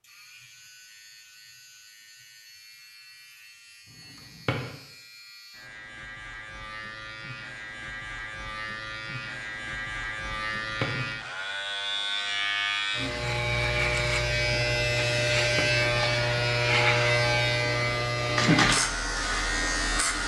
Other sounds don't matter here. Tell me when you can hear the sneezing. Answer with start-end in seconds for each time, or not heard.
not heard.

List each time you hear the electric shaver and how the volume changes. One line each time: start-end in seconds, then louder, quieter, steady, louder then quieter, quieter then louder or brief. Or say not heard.
0.0-20.2 louder.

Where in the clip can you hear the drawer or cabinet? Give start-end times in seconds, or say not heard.
4.2-4.7, 10.7-11.1, 15.3-15.8.